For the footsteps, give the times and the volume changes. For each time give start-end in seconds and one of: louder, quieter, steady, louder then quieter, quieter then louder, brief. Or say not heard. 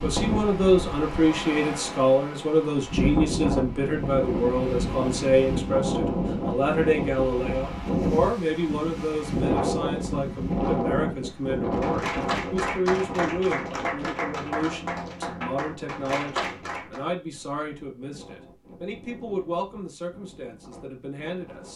not heard.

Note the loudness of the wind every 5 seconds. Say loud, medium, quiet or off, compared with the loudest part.
loud, loud, loud, quiet, quiet.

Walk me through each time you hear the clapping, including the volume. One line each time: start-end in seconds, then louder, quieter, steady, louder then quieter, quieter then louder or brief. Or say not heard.
11.8-17.0 steady.